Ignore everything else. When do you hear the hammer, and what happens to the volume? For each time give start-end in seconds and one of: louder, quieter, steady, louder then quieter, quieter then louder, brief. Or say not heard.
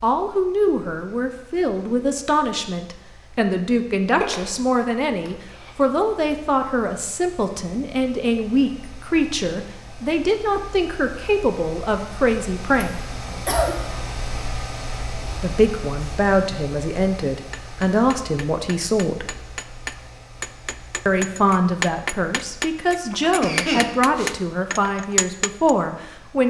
17.5-25.8 louder.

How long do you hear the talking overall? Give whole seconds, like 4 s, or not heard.
22 s.